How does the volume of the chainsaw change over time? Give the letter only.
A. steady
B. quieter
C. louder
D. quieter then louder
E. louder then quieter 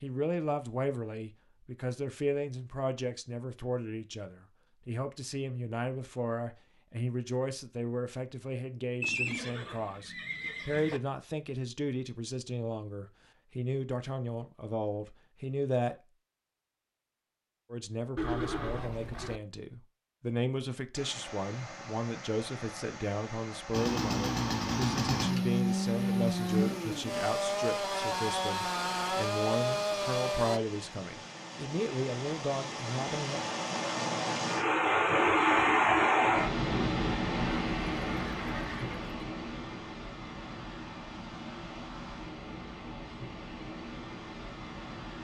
A.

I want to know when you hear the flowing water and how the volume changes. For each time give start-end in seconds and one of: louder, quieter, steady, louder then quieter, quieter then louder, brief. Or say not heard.
20.9-45.1 louder then quieter.